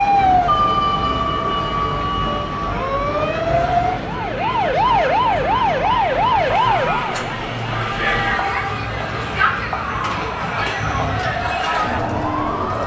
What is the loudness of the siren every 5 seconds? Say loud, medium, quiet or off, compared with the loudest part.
loud, loud, medium.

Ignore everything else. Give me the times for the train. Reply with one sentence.
You can hear the train from 0.0 to 12.8 s.